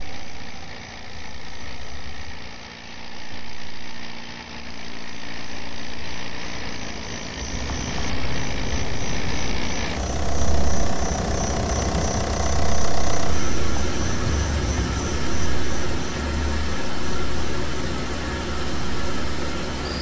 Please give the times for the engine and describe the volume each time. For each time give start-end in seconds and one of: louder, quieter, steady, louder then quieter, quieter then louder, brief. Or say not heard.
0.0-19.9 louder.